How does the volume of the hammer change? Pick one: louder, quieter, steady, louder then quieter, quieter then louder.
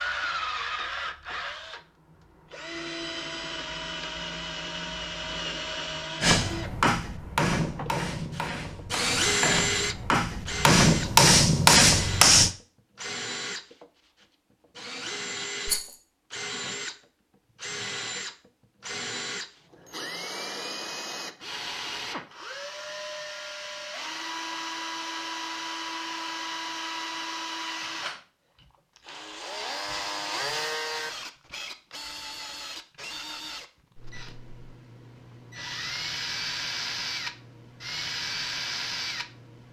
quieter then louder.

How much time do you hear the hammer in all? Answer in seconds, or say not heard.
6 s.